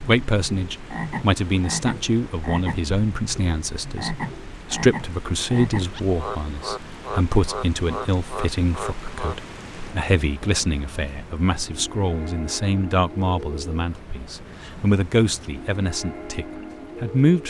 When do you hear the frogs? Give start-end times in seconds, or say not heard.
0.0-9.3.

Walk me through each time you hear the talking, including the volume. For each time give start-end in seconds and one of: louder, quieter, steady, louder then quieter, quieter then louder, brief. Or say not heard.
0.0-17.4 steady.